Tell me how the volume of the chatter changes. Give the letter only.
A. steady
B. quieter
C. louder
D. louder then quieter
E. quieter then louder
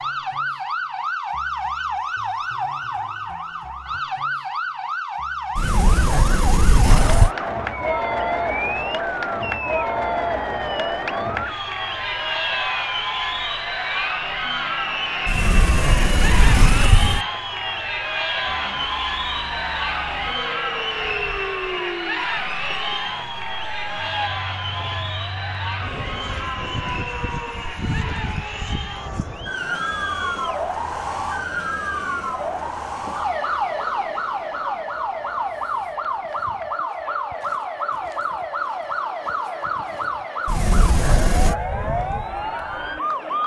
B.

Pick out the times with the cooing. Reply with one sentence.
The cooing can't be heard in this clip.